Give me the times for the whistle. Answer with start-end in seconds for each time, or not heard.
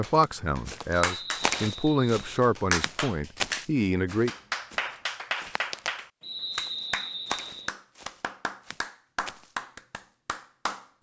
1.0-2.2, 6.2-7.7.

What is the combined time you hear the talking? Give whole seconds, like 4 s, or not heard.
4 s.